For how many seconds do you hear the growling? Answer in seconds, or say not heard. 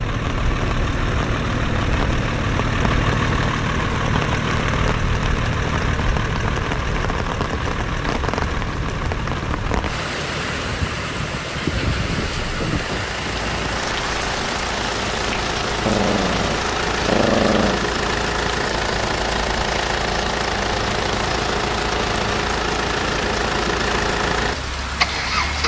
2 s.